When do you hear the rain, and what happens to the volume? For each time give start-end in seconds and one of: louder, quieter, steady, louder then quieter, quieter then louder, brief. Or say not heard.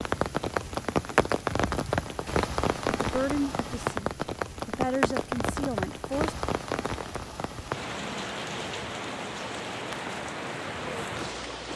0.0-11.7 quieter.